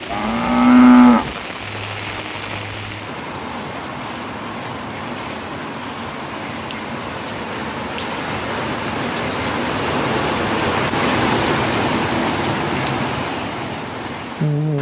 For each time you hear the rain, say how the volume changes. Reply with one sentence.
You can hear the rain from 0.0 to 14.7 s, getting louder.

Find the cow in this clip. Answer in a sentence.
The cow can be heard from 0.1 to 1.4 s.